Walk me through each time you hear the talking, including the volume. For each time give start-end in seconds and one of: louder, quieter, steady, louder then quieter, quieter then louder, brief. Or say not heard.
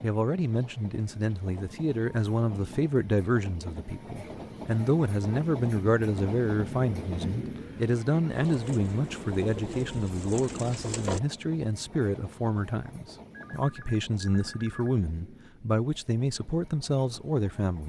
0.0-17.8 steady.